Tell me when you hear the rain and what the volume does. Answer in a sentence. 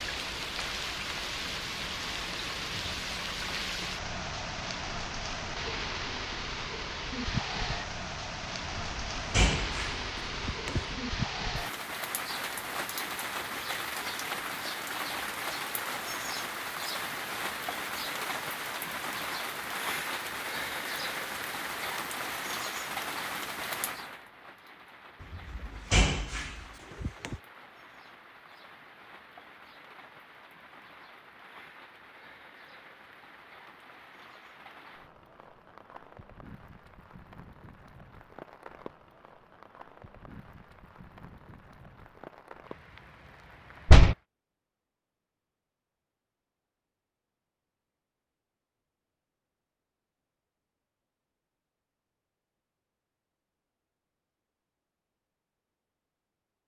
The rain can be heard from 0.0 to 44.2 s, getting quieter.